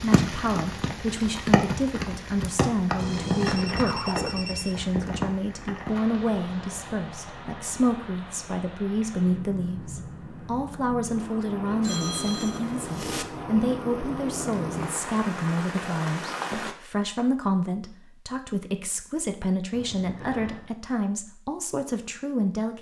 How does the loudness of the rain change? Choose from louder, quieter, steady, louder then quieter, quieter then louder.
quieter then louder.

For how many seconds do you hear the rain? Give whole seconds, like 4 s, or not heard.
17 s.